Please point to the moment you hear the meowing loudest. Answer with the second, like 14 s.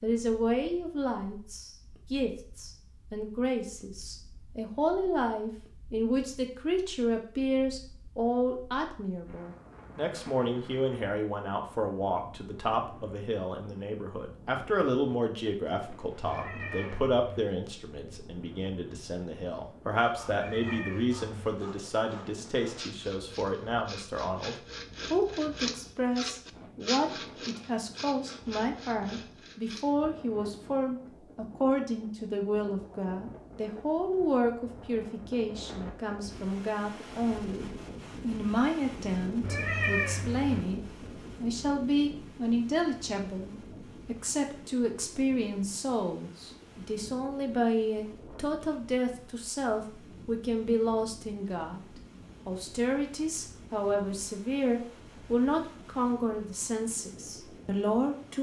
40 s.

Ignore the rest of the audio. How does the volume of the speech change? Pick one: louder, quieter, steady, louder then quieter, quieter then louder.
steady.